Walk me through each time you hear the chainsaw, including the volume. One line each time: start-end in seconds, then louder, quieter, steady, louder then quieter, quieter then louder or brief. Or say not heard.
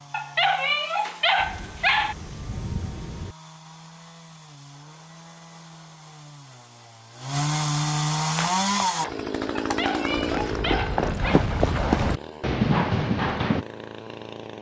0.0-14.5 louder then quieter.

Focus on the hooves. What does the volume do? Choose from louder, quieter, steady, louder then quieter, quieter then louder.
louder.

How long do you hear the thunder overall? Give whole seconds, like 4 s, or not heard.
2 s.